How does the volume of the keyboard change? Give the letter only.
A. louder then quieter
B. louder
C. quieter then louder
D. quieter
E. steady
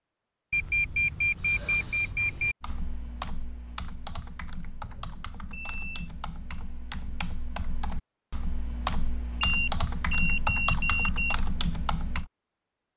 B.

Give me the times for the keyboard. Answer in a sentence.
The keyboard can be heard from 2.6 to 12.3 s.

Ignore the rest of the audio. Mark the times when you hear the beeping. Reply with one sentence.
The beeping can be heard from 0.5 to 2.5 s, from 4.8 to 6.1 s and from 9.4 to 11.3 s.